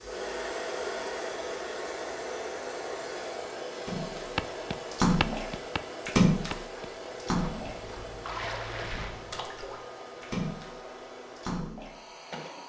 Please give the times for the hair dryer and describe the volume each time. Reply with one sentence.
You can hear the hair dryer from 0.0 to 12.6 s, getting quieter.